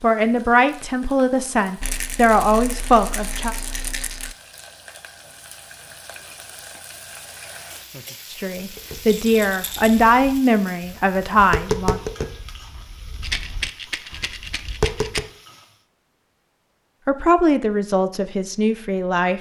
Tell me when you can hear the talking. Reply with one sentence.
You can hear the talking from 0.0 to 3.5 s, from 8.3 to 12.0 s and from 17.1 to 19.3 s.